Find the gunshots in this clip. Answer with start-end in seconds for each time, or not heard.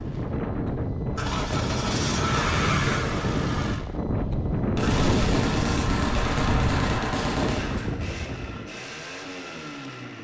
4.8-7.9.